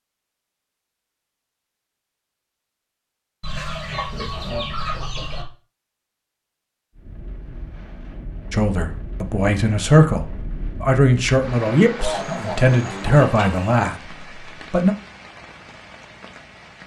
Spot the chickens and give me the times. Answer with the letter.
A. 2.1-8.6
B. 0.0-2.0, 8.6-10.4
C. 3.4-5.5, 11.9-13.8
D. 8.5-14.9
C.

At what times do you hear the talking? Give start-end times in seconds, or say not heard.
8.5-14.9.